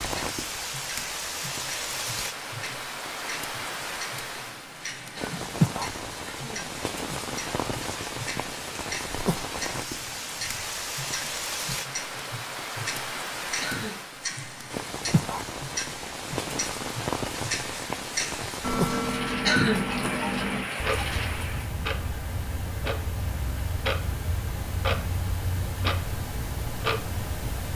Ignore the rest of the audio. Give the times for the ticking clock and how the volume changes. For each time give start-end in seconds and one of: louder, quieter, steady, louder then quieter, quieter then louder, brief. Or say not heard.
0.2-27.7 louder.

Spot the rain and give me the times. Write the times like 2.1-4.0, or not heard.
0.0-21.8.